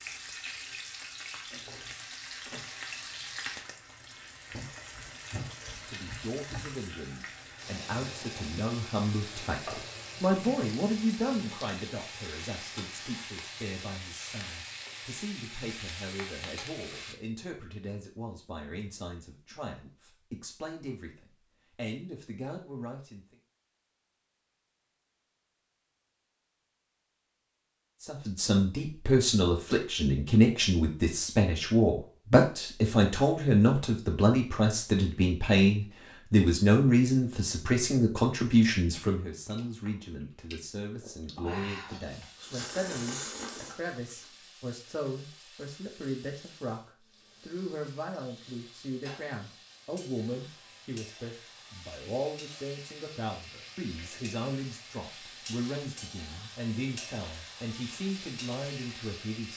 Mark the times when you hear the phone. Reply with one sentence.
The phone can't be heard in this clip.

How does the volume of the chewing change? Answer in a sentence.
The volume of the chewing goes up.